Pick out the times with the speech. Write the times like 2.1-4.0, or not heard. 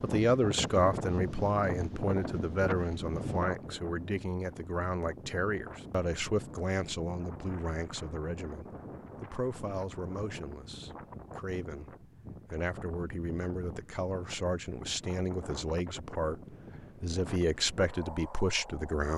0.0-19.1.